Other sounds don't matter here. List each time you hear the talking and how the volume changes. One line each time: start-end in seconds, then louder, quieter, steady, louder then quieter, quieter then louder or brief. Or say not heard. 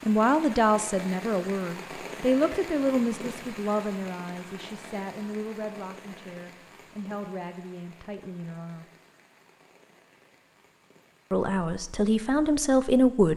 0.0-8.8 quieter
11.3-13.3 brief.